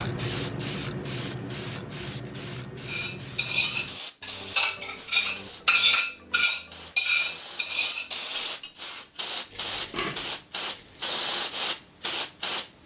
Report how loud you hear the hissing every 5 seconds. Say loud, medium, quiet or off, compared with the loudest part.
medium, medium, loud.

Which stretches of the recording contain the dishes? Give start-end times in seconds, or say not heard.
2.9-11.1.